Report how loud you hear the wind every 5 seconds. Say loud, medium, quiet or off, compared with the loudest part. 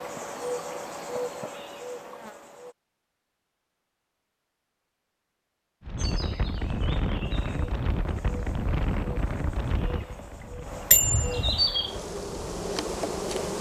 off, loud, quiet.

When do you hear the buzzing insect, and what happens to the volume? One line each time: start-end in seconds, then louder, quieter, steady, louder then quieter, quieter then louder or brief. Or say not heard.
0.0-2.8 brief
6.0-13.5 louder.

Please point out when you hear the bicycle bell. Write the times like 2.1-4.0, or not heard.
10.9-11.6.